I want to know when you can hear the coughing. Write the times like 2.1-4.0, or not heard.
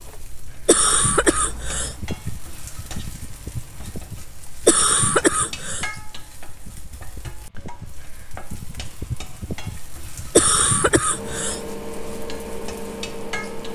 0.7-1.9, 4.7-5.8, 10.3-11.6.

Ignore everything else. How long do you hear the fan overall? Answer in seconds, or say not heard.
14 s.